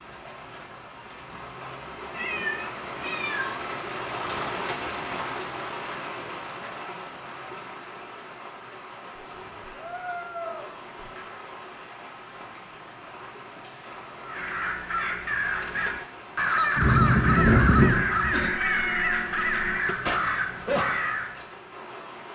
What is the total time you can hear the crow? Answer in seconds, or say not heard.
7 s.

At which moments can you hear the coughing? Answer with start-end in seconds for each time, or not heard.
16.8-18.5.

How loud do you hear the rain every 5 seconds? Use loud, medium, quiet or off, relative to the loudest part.
loud, loud, medium, medium, medium.